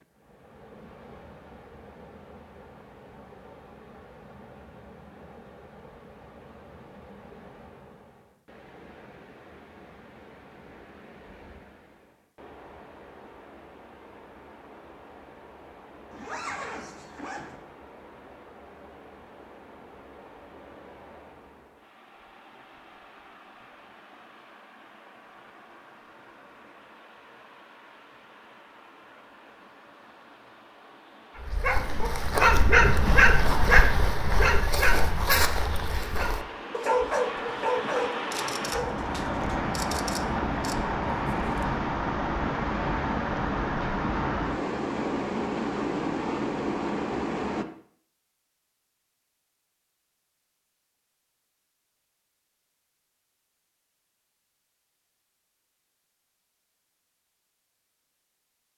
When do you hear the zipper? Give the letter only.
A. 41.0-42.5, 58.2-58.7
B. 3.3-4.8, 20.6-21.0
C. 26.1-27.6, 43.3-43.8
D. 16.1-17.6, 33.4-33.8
D.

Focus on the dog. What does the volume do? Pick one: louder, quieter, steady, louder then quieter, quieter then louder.
quieter.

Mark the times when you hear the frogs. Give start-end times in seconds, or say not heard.
not heard.